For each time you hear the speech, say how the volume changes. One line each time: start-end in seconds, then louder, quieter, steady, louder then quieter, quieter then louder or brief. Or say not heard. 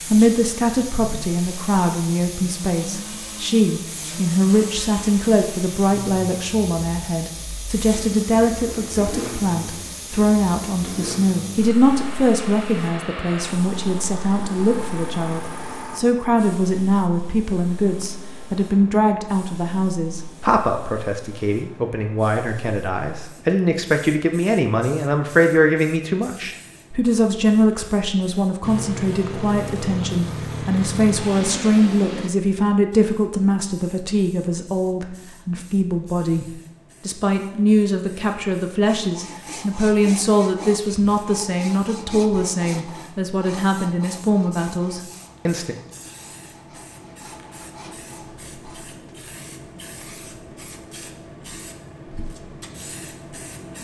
0.0-36.5 steady
37.0-45.8 steady.